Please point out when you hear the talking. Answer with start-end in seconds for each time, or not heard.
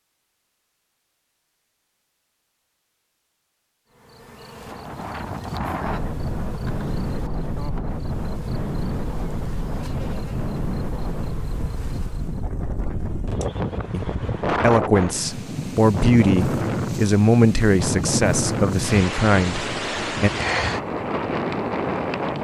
13.9-20.3.